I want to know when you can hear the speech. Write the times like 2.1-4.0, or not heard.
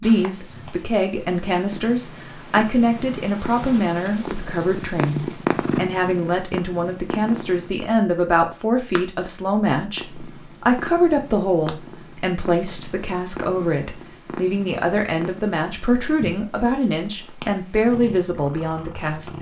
0.0-19.3.